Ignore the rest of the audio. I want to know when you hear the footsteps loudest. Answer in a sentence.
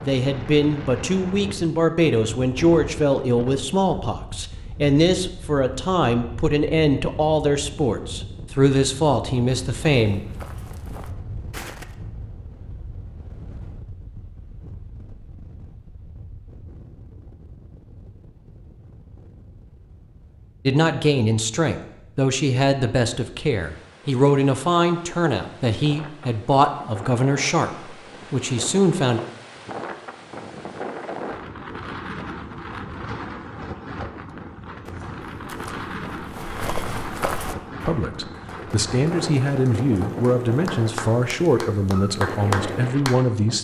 The volume of the footsteps peaks at 37 seconds.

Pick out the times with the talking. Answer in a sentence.
The talking can be heard from 0.0 to 10.2 s, from 20.6 to 29.2 s and from 37.9 to 43.5 s.